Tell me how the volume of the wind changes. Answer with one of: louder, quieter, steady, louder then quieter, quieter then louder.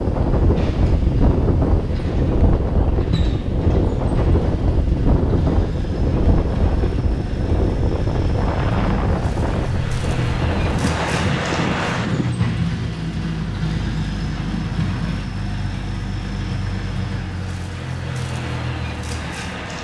steady.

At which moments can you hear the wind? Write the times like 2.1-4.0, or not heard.
0.0-12.3.